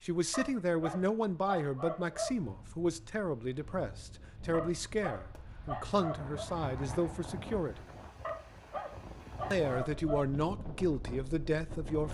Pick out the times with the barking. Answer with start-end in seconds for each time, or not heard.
0.3-2.4, 4.5-6.5, 8.2-10.2.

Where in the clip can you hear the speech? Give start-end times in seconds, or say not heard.
0.0-7.8, 9.5-12.0.